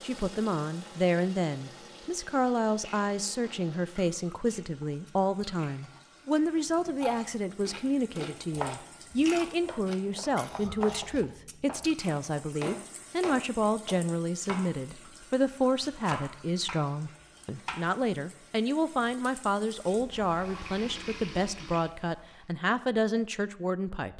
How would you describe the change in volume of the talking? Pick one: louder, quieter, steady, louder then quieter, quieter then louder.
steady.